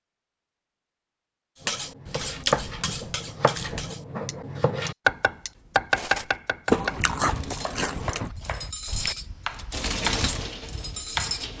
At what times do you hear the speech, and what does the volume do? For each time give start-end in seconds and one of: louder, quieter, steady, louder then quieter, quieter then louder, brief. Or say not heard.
not heard.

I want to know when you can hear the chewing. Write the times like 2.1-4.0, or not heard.
2.0-3.9, 6.7-8.3.